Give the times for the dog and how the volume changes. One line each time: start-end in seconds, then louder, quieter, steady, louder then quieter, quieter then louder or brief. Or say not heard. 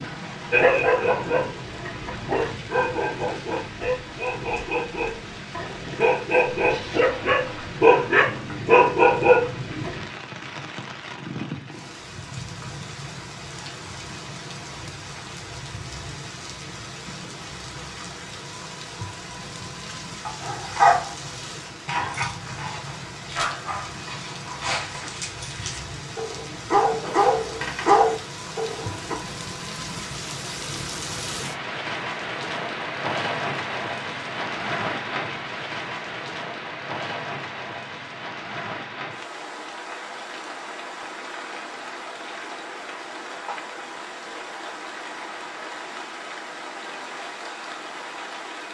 0.5-10.1 louder
19.9-29.1 quieter then louder.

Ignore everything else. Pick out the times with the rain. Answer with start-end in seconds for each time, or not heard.
0.0-48.6.